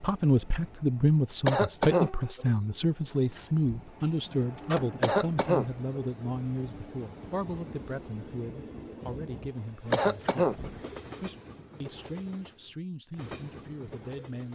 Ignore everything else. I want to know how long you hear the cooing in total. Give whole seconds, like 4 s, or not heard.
not heard.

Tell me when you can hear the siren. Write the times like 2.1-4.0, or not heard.
not heard.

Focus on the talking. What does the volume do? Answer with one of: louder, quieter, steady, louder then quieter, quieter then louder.
quieter.